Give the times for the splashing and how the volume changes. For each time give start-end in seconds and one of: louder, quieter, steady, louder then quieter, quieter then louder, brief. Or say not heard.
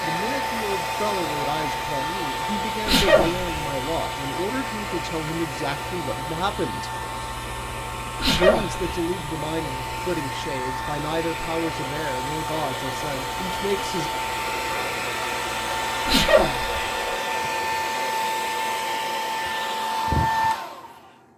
not heard.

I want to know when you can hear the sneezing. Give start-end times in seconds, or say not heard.
2.9-3.6, 8.2-9.0, 16.1-17.1.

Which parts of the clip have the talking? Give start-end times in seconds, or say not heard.
0.0-6.9, 8.2-14.1.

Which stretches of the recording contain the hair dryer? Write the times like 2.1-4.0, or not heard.
0.0-21.3.